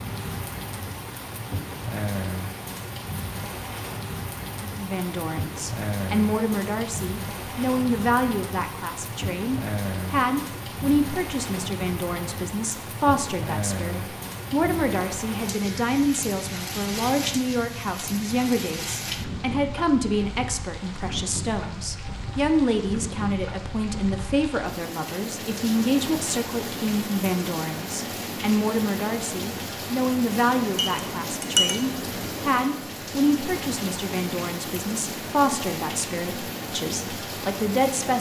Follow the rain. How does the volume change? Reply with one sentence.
The loudness of the rain stays about the same.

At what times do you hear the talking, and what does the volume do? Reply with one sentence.
You can hear the talking from 4.8 to 38.1 s, at a steady volume.